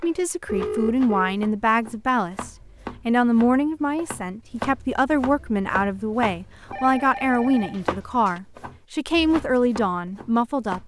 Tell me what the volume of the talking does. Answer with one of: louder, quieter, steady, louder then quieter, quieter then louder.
steady.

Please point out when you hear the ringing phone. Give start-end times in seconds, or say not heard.
0.5-1.4, 6.7-8.4.